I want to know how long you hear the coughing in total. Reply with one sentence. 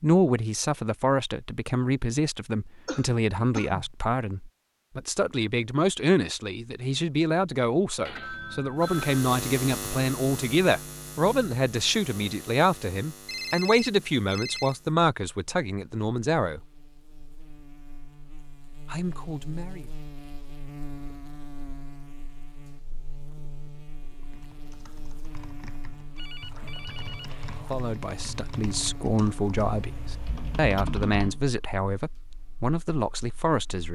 You can hear the coughing for 2 seconds altogether.